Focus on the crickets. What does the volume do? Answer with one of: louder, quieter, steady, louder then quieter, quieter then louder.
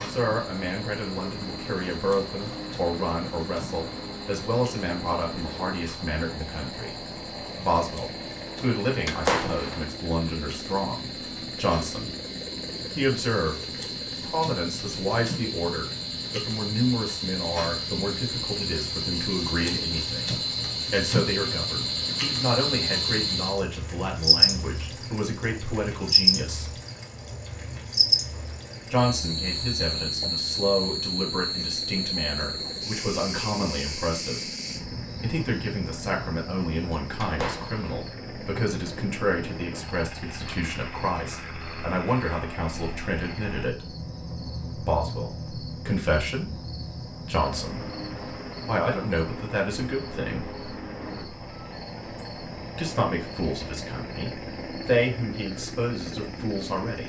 louder then quieter.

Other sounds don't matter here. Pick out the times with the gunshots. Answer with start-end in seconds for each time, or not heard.
9.1-9.8, 37.2-38.0.